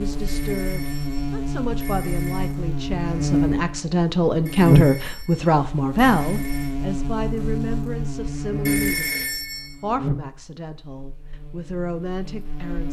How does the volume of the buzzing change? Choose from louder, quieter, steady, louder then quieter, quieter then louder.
louder then quieter.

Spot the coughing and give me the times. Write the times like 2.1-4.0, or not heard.
not heard.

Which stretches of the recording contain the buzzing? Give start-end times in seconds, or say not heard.
0.0-12.8.